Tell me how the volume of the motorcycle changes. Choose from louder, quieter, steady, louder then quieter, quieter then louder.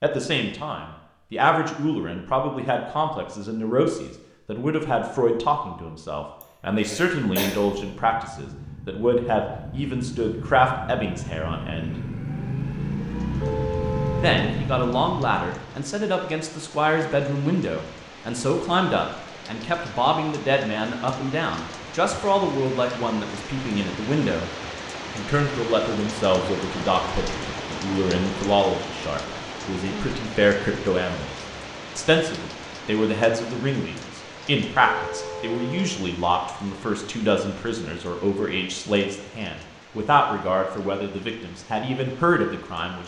louder.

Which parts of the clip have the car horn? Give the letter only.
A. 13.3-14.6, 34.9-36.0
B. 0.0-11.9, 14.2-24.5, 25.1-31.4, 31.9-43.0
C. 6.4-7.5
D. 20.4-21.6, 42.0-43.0
A.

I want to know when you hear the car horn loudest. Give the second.
14 s.